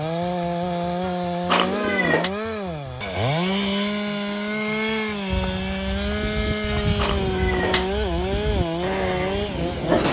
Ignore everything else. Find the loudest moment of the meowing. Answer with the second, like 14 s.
2 s.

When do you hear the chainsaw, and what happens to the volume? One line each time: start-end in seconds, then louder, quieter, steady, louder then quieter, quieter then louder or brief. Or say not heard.
0.0-10.0 steady.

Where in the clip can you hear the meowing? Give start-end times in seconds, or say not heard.
1.4-2.3, 7.0-8.0.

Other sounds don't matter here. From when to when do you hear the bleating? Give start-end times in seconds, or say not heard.
5.3-10.0.